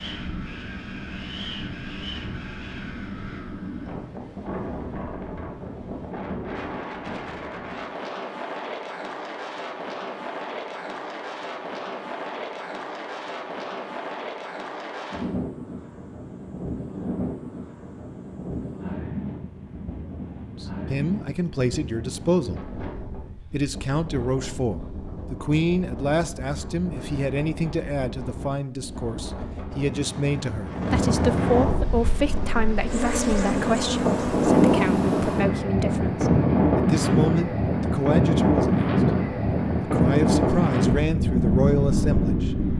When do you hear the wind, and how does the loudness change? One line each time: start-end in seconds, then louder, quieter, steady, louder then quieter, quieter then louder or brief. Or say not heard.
0.0-42.7 louder.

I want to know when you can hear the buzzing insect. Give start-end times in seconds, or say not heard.
31.8-34.5.